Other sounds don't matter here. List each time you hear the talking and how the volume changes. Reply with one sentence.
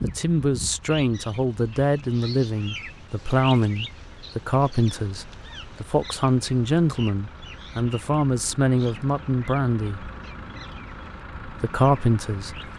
You can hear the talking from 0.0 to 10.1 s, at a steady volume; and briefly from 11.4 to 12.7 s.